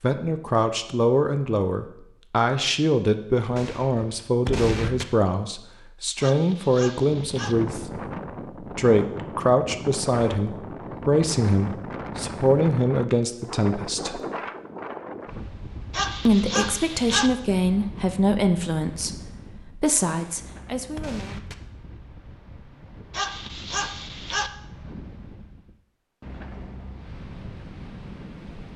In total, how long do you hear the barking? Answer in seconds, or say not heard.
4 s.